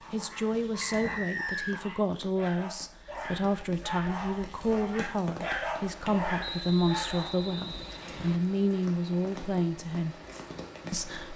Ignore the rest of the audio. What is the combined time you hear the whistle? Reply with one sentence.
The whistle can be heard for 3 seconds in total.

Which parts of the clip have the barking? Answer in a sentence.
You can hear the barking from 0.0 to 7.3 s.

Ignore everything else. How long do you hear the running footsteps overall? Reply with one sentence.
You can't hear the running footsteps here.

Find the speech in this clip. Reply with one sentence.
You can hear the speech from 0.1 to 10.2 s and from 10.9 to 11.3 s.